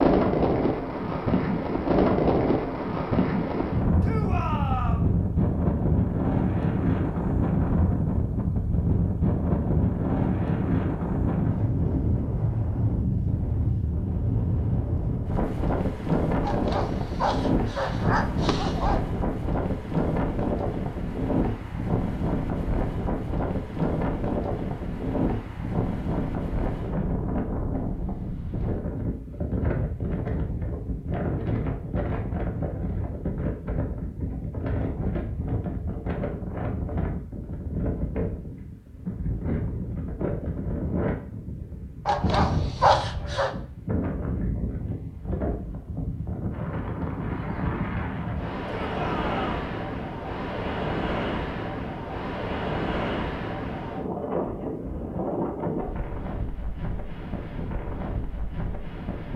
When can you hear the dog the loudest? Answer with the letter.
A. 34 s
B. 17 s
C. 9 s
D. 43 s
D.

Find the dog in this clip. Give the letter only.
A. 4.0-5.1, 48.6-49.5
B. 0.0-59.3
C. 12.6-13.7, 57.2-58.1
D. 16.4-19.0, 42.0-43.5
D.